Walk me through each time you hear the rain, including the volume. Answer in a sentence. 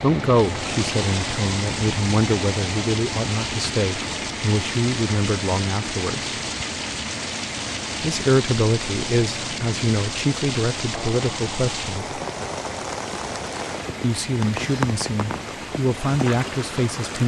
The rain can be heard from 0.0 to 17.2 s, at a steady volume.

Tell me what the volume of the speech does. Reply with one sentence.
The volume of the speech stays about the same.